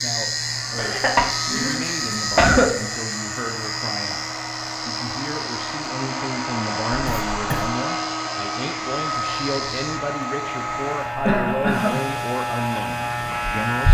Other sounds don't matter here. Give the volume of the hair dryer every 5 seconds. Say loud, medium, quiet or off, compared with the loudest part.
medium, loud, medium.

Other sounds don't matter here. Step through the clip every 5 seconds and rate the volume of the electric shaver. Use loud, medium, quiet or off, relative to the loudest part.
loud, medium, loud.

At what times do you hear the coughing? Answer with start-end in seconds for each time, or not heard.
0.8-2.7, 7.0-7.7, 11.2-12.0.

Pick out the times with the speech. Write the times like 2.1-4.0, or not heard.
0.0-4.2, 4.8-13.8.